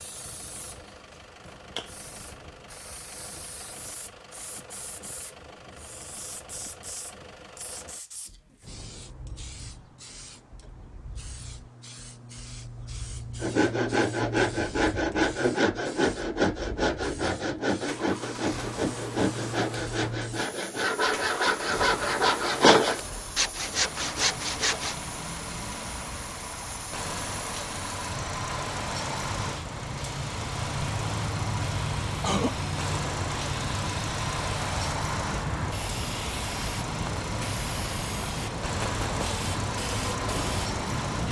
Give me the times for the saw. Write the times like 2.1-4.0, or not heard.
13.4-24.9.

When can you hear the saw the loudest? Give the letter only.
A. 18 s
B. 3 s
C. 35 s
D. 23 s
D.